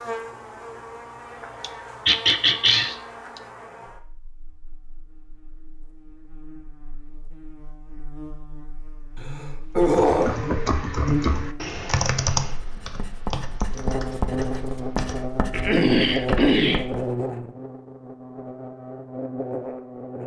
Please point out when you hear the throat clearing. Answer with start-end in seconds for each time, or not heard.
1.6-3.0, 9.2-10.4, 15.1-16.9.